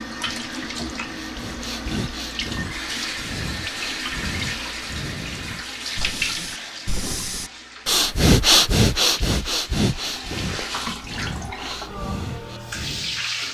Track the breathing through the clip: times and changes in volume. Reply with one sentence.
The breathing can be heard from 1.1 to 13.2 s, getting louder then quieter.